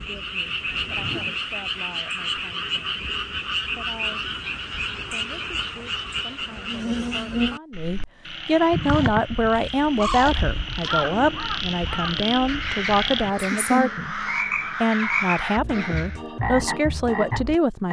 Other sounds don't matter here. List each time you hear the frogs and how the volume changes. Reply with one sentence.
You can hear the frogs from 0.0 to 17.8 s, at a steady volume.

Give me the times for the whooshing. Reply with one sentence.
You can hear the whooshing from 0.7 to 1.4 s.